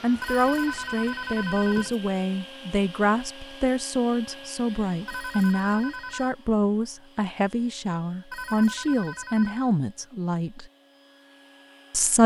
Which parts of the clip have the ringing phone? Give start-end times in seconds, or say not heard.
0.2-1.9, 5.0-6.3, 8.3-9.7.